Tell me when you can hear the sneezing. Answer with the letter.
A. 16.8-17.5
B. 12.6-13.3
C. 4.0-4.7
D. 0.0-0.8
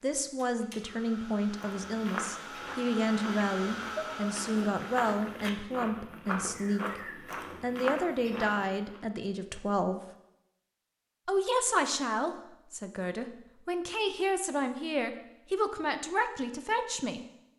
C.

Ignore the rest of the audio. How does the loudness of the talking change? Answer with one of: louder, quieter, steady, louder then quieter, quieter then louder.
steady.